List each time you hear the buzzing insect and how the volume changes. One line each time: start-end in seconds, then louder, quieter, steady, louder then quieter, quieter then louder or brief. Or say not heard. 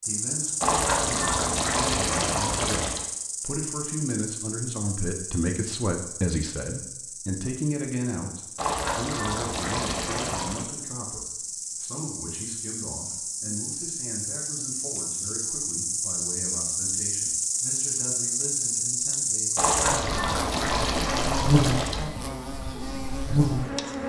0.0-24.0 quieter then louder.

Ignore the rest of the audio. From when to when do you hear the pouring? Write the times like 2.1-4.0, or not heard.
0.6-3.0, 8.6-10.7, 19.6-22.1.